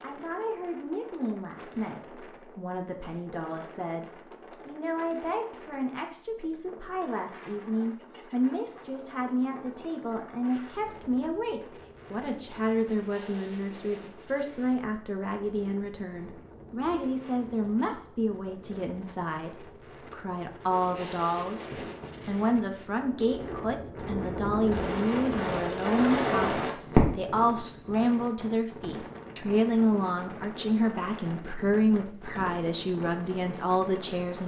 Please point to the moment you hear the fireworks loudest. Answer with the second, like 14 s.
27 s.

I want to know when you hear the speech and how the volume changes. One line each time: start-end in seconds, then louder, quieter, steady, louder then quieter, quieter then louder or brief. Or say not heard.
0.0-34.4 louder.